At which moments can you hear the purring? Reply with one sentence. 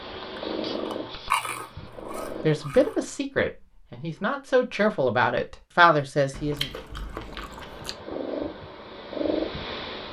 The purring can be heard from 0.0 to 2.7 s and from 7.2 to 10.0 s.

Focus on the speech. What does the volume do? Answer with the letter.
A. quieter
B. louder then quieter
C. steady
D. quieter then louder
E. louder
D.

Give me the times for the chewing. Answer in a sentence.
The chewing can be heard from 0.3 to 3.1 s and from 6.3 to 8.0 s.